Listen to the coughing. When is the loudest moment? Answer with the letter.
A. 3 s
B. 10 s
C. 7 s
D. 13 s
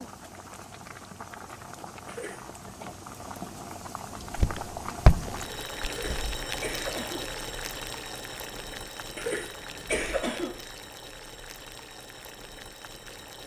B.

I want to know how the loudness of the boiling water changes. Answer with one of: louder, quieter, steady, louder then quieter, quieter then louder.
louder then quieter.